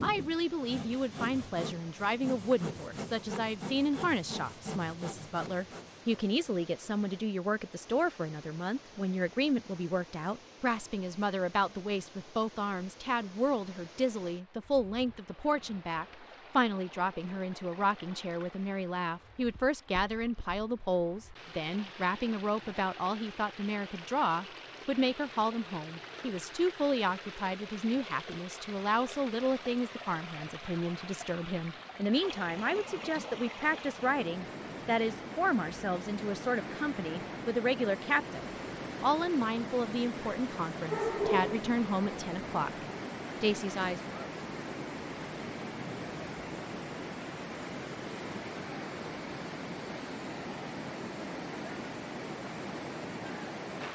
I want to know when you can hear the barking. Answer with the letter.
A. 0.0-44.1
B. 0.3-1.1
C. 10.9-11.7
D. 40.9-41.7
D.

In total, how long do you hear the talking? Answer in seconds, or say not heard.
44 s.